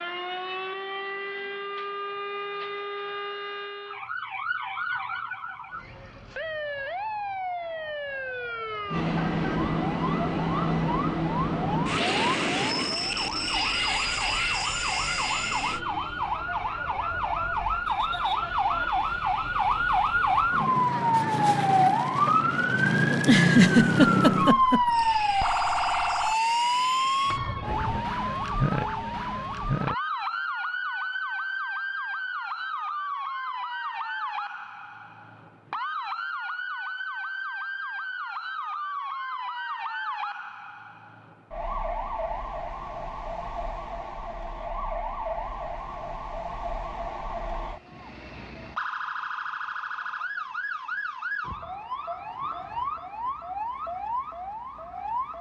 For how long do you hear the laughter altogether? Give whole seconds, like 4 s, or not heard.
2 s.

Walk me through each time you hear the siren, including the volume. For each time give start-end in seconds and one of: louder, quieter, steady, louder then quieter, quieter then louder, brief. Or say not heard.
0.0-55.3 louder then quieter.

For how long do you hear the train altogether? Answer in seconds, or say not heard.
10 s.